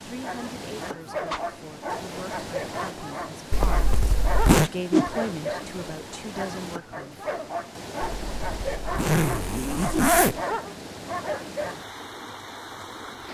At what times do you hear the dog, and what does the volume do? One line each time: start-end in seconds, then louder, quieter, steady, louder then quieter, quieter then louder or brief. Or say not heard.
0.2-11.8 steady.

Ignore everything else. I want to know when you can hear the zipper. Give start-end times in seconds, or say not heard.
3.5-4.7, 8.0-10.4.